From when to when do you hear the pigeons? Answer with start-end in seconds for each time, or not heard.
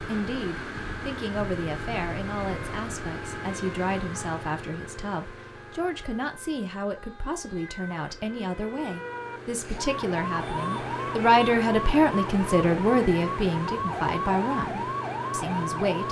not heard.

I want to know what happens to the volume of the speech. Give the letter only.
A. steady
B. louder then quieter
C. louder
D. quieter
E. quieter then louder
C.